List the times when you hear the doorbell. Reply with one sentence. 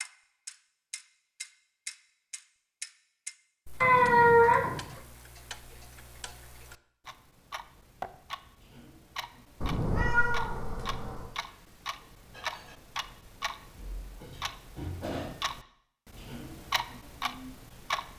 The doorbell can't be heard in this clip.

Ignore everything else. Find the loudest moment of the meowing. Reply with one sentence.
The loudest moment of the meowing is at 4 seconds.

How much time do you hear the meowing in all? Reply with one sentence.
You can hear the meowing for 3 seconds altogether.